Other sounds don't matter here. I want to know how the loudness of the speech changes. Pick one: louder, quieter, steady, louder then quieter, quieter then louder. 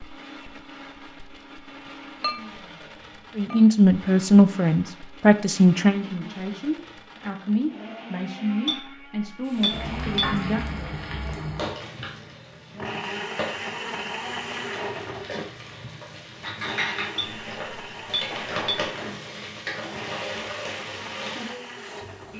quieter.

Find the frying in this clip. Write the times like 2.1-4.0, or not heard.
9.4-22.3.